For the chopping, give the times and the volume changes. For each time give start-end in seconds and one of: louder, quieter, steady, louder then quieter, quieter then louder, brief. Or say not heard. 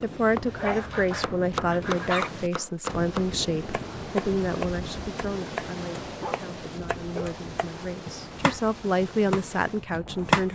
0.0-10.4 quieter then louder.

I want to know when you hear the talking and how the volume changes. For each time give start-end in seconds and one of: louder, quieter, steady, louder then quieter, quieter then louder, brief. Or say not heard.
0.0-10.4 quieter then louder.